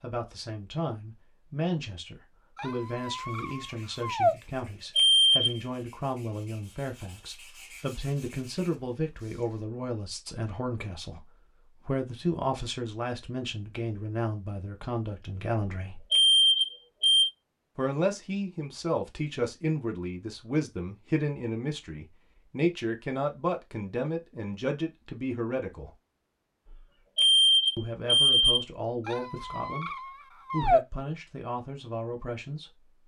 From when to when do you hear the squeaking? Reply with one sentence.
You can hear the squeaking from 2.5 to 4.3 s and from 29.1 to 30.8 s.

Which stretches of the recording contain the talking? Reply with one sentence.
The talking can be heard from 0.0 to 16.1 s, from 17.8 to 25.9 s and from 27.8 to 32.9 s.